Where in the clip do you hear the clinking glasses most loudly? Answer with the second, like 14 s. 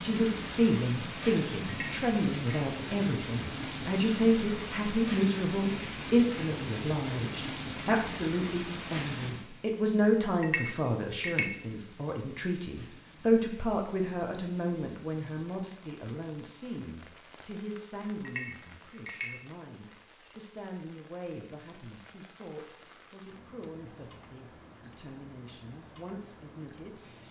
11 s.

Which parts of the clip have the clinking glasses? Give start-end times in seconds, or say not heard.
1.6-2.6, 10.4-11.5, 18.2-19.3.